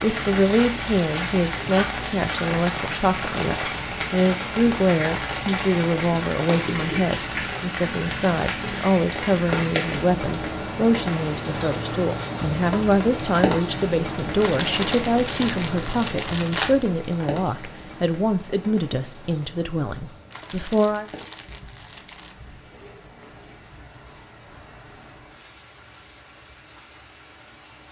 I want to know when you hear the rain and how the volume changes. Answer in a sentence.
The rain can be heard from 0.0 to 27.8 s, getting quieter.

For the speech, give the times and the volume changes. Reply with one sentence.
You can hear the speech from 0.0 to 21.1 s, at a steady volume.